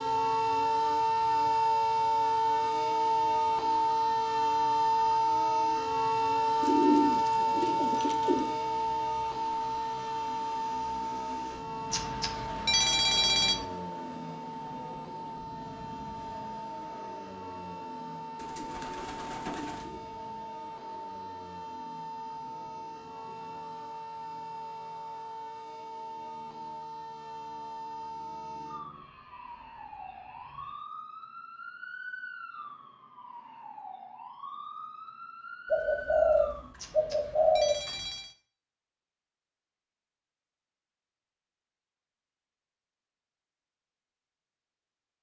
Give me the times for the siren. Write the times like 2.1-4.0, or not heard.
0.0-36.7.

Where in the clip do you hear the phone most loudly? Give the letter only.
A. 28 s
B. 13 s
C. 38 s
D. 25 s
B.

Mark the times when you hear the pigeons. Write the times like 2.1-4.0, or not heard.
6.6-8.5, 18.4-20.0, 35.7-38.0.